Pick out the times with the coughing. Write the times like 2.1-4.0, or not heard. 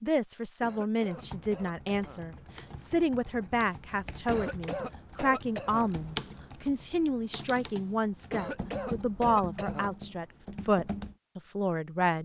0.6-2.2, 4.2-5.9, 8.3-9.9.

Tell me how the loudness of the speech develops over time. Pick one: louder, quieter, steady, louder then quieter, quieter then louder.
steady.